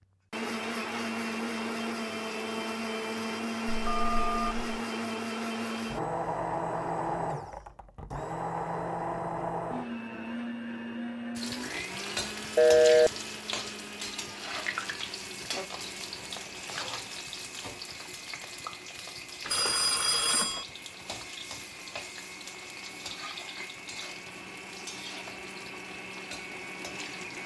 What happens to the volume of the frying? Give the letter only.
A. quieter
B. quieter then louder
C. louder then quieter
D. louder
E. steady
A.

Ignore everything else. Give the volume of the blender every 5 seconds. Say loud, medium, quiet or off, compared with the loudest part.
loud, loud, medium, quiet, quiet, medium.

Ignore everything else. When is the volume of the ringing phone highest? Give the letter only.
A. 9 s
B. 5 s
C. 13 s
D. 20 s
C.